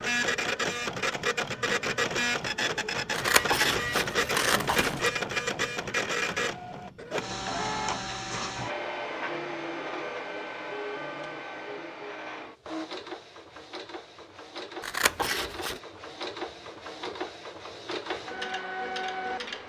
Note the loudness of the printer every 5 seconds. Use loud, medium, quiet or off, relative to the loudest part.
loud, loud, medium, medium.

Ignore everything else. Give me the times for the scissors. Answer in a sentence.
You can hear the scissors from 3.1 to 5.1 s and from 14.8 to 15.8 s.